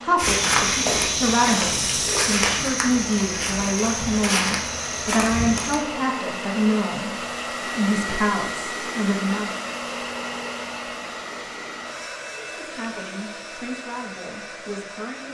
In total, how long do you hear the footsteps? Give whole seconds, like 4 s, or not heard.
6 s.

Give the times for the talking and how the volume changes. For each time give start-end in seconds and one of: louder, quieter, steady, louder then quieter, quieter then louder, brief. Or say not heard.
0.0-9.5 steady
12.4-15.2 brief.